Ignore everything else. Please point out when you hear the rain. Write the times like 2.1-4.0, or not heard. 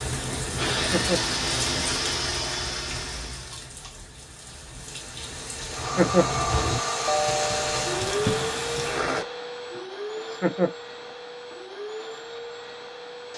0.0-9.2.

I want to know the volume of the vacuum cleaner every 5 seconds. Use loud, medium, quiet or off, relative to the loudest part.
loud, loud, medium.